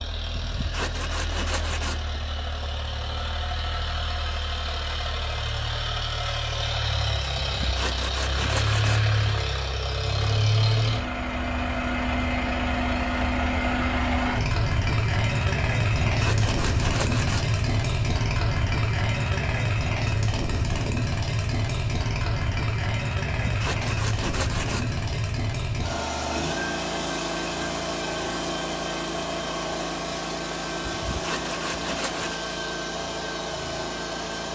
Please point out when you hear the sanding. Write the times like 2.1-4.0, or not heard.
0.3-2.1, 7.3-9.2, 16.1-17.6, 23.4-25.0, 30.9-32.4.